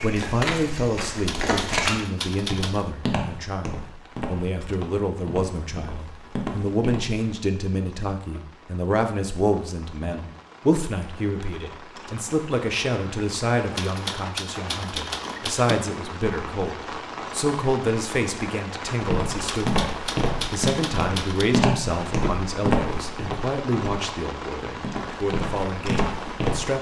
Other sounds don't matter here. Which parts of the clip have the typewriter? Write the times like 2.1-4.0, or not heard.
1.2-2.9, 13.8-15.8, 19.4-21.4.